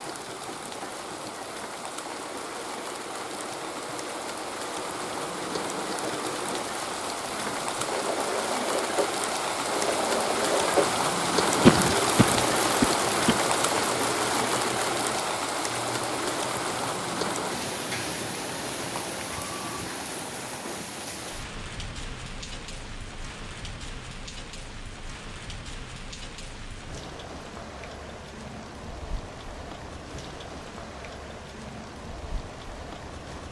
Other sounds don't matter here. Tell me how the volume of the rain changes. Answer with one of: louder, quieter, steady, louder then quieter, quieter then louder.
louder then quieter.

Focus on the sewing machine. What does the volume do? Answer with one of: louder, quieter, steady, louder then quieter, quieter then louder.
louder then quieter.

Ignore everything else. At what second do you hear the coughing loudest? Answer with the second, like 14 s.
12 s.